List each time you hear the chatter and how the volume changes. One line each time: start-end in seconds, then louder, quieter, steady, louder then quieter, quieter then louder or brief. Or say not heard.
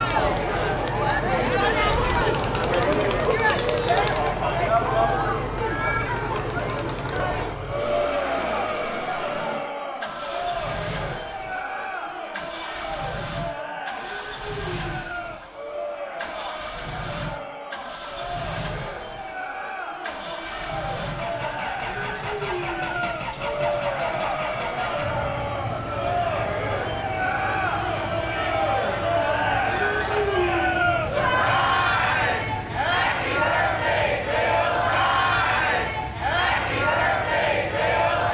0.0-38.2 quieter then louder.